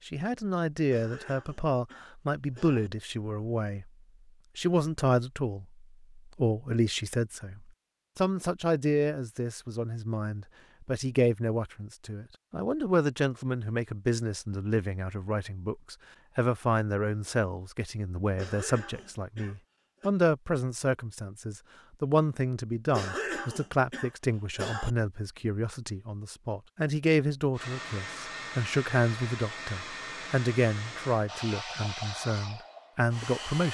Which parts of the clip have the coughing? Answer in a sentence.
The coughing can be heard from 0.9 to 2.9 s, from 18.4 to 20.1 s and from 22.9 to 24.9 s.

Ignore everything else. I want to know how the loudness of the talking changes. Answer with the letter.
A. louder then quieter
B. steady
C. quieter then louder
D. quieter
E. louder
B.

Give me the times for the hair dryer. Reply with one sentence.
You can hear the hair dryer from 27.6 to 33.6 s.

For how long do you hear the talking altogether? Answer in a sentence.
The talking can be heard for 33 seconds in total.